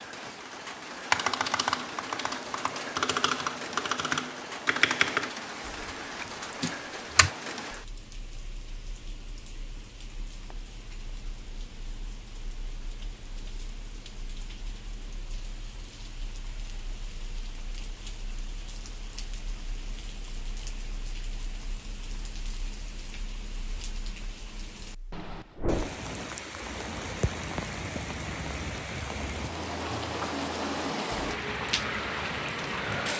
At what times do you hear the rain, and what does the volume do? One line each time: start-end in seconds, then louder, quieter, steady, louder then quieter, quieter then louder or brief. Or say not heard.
0.0-33.1 quieter then louder.